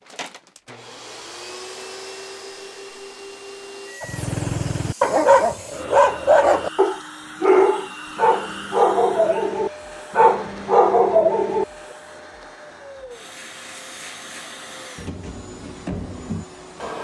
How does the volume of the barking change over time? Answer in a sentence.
The volume of the barking stays about the same.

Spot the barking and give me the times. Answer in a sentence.
You can hear the barking from 4.0 to 11.7 s.